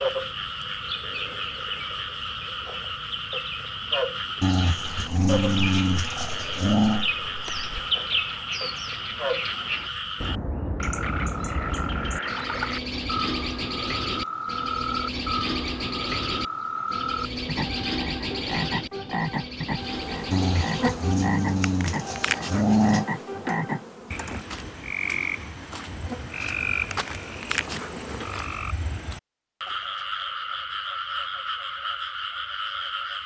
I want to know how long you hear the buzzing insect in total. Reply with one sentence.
The buzzing insect can be heard for 12 seconds in total.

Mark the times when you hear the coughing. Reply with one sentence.
The coughing can't be heard in this clip.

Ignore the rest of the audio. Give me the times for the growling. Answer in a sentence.
You can hear the growling from 4.4 to 7.0 s and from 20.3 to 23.1 s.